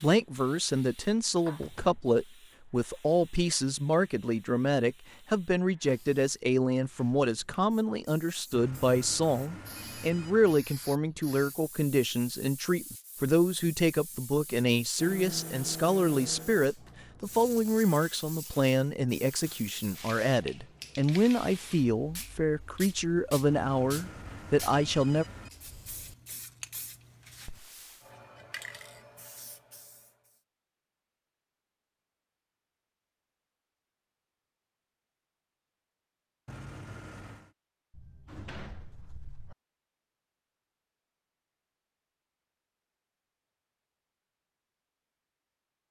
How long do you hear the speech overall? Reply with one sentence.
The speech can be heard for 25 seconds in total.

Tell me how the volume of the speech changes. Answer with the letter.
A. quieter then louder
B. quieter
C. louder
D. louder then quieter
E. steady
E.